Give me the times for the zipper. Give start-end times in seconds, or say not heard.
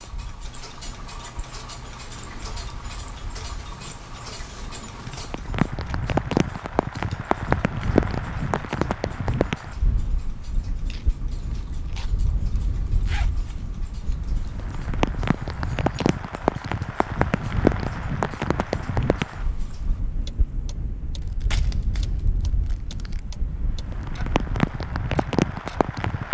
12.5-13.4.